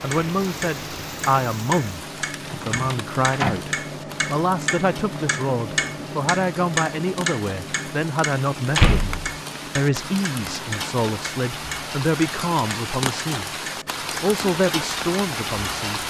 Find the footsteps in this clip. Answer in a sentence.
You can't hear the footsteps here.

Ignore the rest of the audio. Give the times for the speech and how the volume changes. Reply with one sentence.
The speech can be heard from 0.0 to 13.4 s, at a steady volume; and briefly from 14.2 to 16.0 s.